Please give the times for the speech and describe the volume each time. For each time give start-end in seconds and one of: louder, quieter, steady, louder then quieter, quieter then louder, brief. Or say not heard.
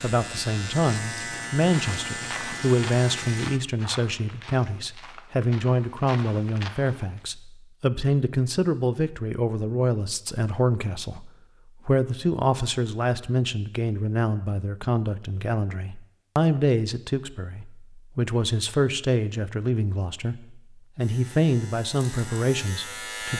0.0-23.3 steady.